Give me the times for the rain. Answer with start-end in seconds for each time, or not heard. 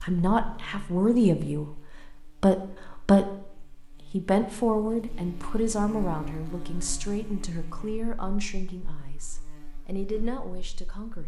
not heard.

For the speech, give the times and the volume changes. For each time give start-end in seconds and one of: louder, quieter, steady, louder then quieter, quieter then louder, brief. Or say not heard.
0.0-11.2 quieter.